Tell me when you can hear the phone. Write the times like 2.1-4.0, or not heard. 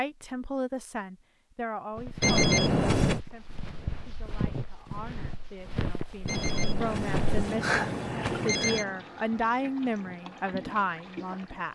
2.2-3.2, 6.2-8.8.